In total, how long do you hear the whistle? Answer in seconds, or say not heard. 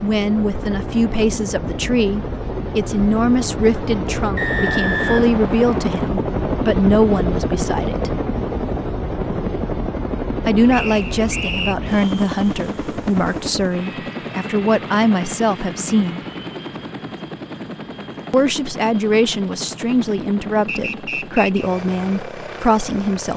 4 s.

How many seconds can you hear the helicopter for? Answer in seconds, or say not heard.
23 s.